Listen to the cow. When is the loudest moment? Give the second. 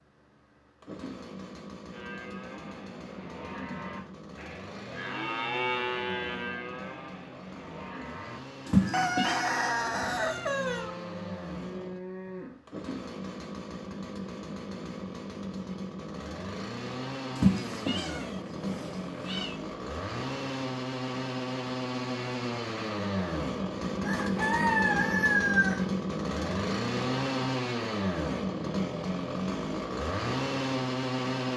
6 s.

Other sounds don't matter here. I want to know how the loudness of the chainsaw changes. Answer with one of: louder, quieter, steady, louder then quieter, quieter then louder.
louder.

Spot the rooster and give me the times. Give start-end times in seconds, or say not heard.
8.9-10.9, 24.0-25.9.